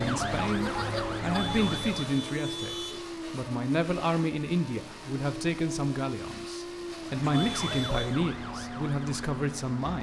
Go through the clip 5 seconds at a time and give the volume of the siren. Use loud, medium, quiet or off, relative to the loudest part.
loud, medium.